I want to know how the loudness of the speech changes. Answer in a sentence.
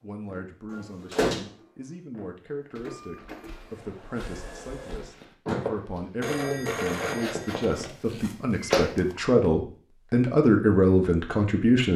The loudness of the speech goes up.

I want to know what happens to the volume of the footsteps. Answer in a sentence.
The loudness of the footsteps goes up.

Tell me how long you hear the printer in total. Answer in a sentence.
You can hear the printer for 5 seconds altogether.